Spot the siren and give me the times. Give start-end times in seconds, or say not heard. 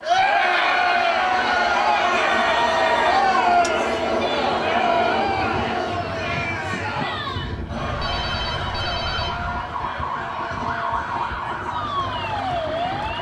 8.0-13.1.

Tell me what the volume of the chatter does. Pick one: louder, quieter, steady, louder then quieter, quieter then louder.
quieter.